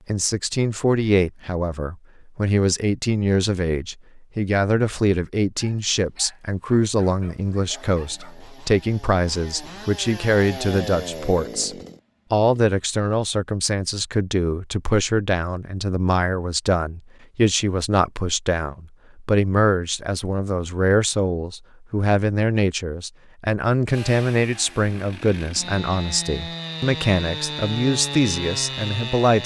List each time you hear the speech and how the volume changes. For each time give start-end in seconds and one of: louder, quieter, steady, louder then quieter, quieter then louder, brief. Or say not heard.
0.1-29.4 steady.